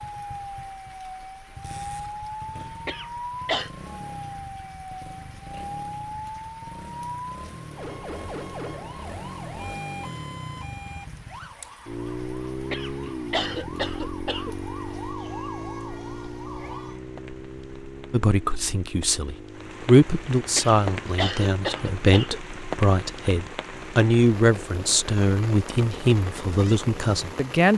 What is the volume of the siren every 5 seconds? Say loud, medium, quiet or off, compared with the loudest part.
loud, loud, medium, loud, off, off.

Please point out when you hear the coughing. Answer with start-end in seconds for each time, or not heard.
2.9-3.7, 12.7-14.6, 20.6-22.4.